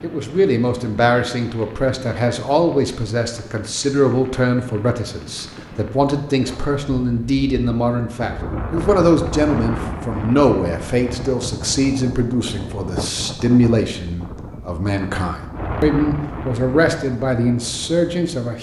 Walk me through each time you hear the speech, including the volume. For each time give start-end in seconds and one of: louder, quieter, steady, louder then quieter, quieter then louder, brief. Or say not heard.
0.0-18.5 steady.